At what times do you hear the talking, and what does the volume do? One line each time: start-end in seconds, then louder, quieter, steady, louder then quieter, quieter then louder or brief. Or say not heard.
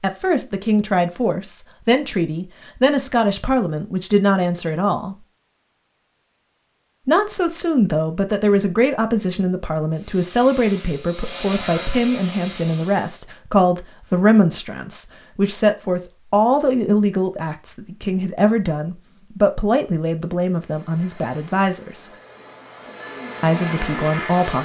0.0-5.2 steady
7.0-22.1 steady
23.4-24.6 brief.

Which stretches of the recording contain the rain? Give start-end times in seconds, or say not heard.
not heard.